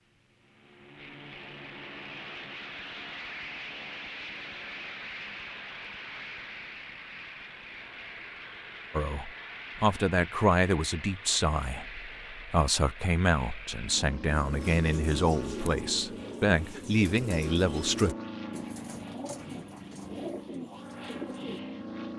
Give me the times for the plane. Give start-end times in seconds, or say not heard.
0.0-22.1.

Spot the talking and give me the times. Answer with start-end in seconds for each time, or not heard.
8.9-18.1.